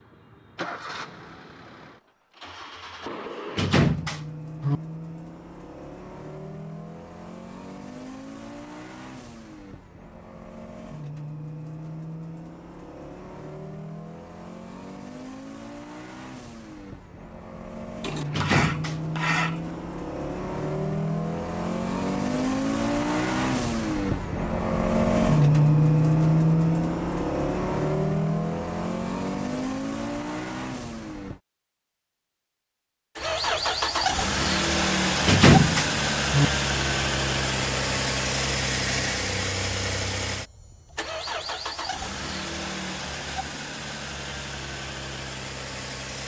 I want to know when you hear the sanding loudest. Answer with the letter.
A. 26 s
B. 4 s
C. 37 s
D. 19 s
D.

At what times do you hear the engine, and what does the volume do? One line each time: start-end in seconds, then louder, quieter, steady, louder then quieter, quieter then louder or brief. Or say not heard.
0.0-31.4 louder
33.1-46.2 quieter.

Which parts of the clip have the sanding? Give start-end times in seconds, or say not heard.
18.0-19.9.